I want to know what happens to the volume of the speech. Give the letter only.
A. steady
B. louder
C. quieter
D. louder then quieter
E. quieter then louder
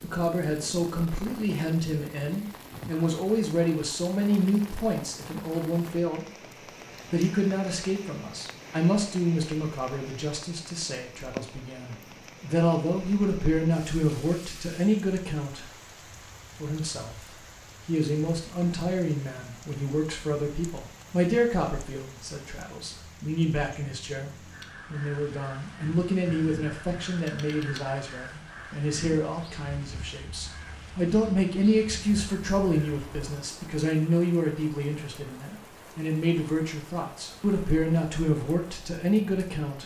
A.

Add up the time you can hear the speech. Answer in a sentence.
You can hear the speech for 38 seconds altogether.